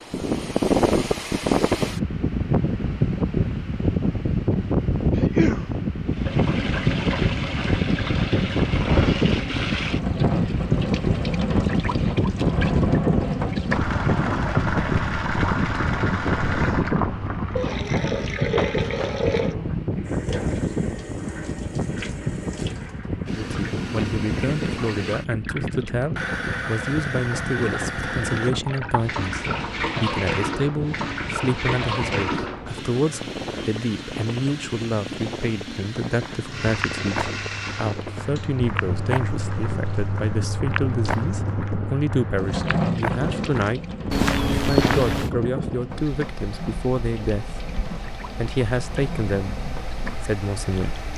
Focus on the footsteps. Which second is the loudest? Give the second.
45 s.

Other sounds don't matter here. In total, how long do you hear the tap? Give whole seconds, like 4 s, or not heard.
45 s.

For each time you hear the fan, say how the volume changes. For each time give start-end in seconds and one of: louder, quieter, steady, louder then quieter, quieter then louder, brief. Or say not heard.
0.0-51.1 quieter.